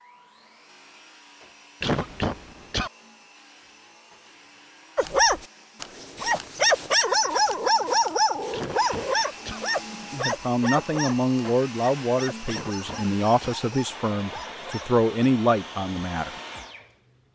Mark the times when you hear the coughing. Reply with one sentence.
The coughing can be heard from 1.8 to 2.9 s, from 8.5 to 9.6 s and from 12.4 to 13.6 s.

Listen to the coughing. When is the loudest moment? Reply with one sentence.
The volume of the coughing peaks at 2 seconds.